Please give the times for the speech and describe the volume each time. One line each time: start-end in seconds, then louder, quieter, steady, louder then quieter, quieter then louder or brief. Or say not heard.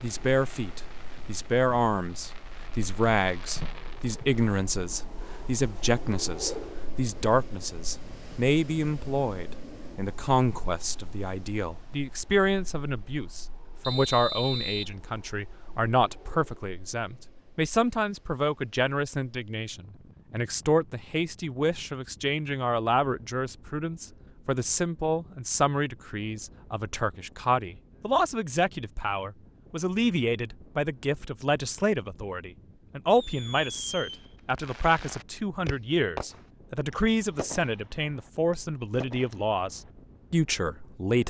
0.0-41.2 steady.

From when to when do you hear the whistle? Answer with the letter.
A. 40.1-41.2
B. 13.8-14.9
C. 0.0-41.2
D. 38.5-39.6
B.